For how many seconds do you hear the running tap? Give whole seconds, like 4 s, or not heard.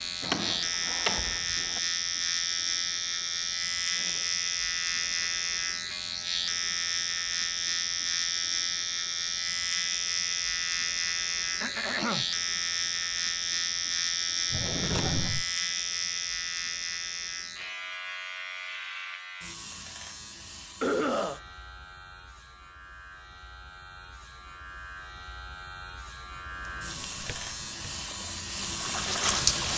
3 s.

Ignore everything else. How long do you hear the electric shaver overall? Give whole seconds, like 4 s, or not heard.
30 s.